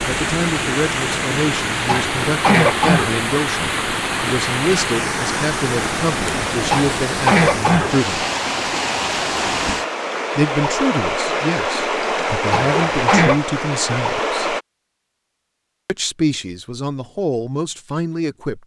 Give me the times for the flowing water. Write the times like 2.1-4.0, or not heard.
0.0-14.7.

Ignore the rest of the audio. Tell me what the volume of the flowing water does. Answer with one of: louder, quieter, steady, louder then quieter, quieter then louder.
steady.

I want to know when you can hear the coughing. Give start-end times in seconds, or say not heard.
1.9-3.1, 6.7-8.0, 12.5-13.4.